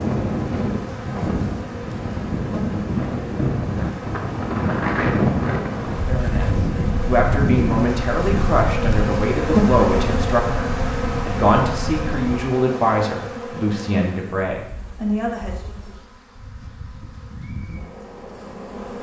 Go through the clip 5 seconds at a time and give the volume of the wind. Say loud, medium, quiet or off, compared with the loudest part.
loud, loud, medium, off.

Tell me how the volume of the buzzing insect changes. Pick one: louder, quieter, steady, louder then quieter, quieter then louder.
louder then quieter.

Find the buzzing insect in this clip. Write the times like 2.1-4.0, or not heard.
0.0-18.9.